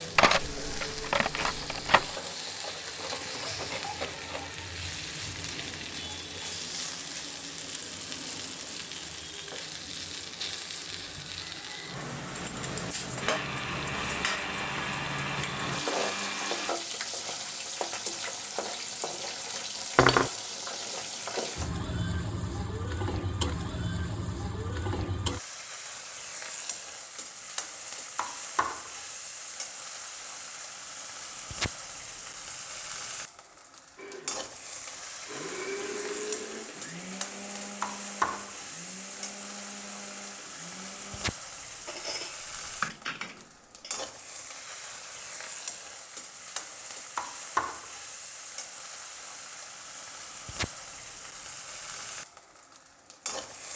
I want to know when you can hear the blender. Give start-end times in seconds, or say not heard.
13.2-16.8, 34.0-41.4.